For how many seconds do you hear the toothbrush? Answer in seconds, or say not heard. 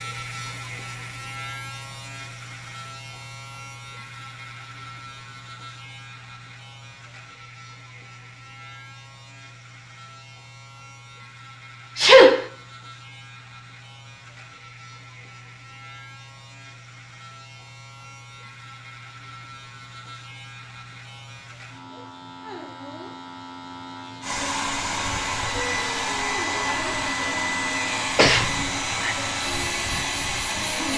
not heard.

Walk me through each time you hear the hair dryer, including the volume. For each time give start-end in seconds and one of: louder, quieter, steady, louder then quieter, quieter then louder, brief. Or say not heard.
24.2-30.9 steady.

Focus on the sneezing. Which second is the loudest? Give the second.
12 s.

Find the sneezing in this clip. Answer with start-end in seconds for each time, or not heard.
11.9-12.4, 28.1-29.1.